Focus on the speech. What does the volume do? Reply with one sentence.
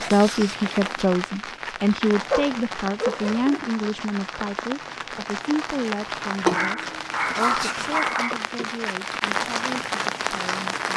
The volume of the speech goes down.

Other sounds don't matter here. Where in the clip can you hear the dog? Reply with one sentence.
You can hear the dog from 2.3 to 3.6 s and from 6.5 to 8.3 s.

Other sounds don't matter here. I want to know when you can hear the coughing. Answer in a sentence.
The coughing can be heard from 8.2 to 8.8 s.